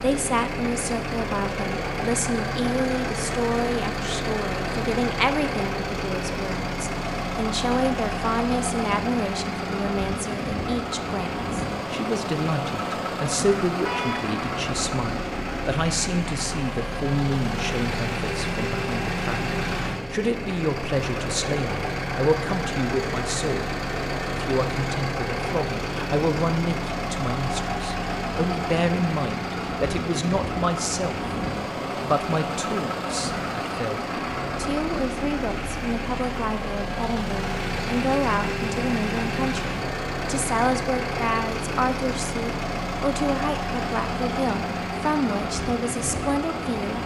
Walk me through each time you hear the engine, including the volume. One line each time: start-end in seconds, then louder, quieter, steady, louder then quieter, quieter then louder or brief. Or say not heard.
0.0-47.0 steady.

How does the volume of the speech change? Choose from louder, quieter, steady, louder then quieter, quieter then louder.
steady.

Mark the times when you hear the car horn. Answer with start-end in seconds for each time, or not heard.
13.8-14.3.